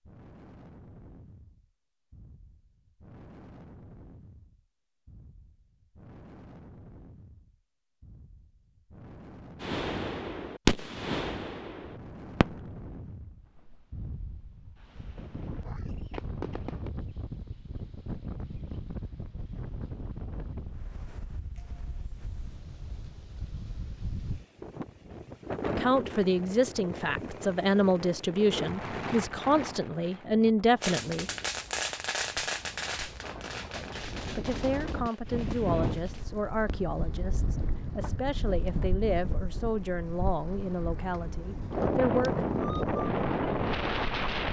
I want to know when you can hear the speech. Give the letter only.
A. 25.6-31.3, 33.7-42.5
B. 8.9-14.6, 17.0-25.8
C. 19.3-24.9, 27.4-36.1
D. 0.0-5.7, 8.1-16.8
A.